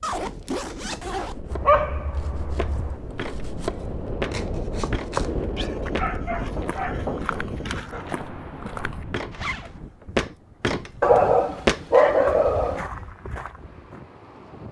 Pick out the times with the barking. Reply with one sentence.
You can hear the barking from 1.5 to 3.0 s, from 5.5 to 8.2 s and from 11.0 to 12.8 s.